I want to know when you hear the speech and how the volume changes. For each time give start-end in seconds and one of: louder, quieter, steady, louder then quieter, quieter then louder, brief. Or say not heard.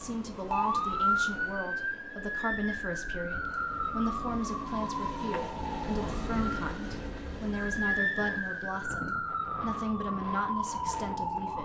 0.0-11.5 steady.